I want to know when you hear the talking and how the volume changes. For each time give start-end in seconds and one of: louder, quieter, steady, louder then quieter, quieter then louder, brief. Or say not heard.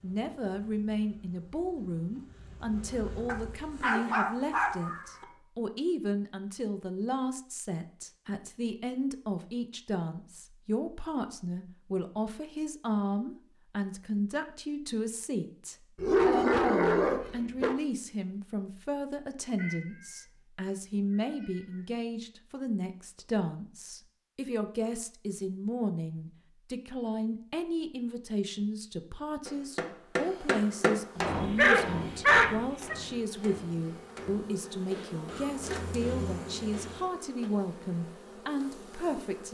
0.0-39.4 steady.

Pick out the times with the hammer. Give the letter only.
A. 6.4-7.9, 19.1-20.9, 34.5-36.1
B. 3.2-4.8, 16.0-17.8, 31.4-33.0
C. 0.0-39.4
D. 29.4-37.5
D.